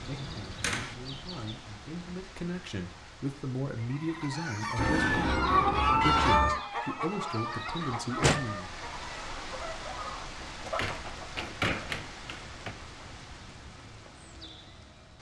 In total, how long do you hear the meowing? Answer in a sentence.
You can hear the meowing for 2 seconds altogether.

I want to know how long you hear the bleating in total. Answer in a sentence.
You can't hear the bleating here.